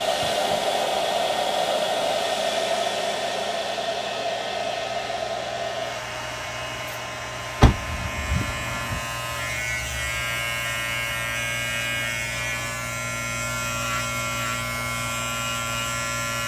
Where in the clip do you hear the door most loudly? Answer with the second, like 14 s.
8 s.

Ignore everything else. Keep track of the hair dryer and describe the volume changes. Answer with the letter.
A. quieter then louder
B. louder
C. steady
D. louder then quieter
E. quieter
E.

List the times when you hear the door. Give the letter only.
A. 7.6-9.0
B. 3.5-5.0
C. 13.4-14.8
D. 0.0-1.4
A.